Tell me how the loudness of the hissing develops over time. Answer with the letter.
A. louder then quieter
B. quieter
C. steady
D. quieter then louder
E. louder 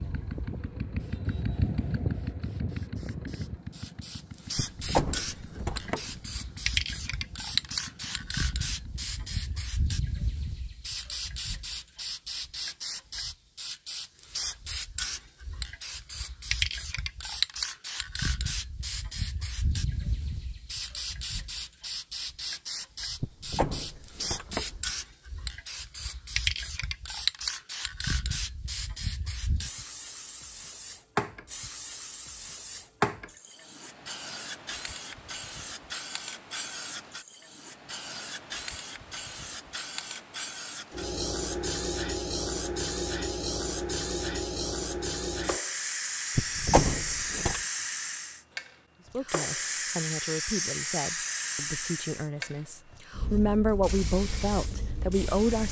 C.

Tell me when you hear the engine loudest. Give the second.
2 s.